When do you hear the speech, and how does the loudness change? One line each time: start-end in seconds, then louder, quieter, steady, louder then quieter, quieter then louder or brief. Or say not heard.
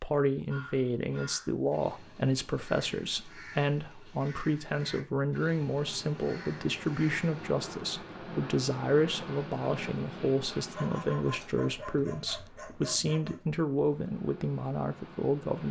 0.0-15.6 steady.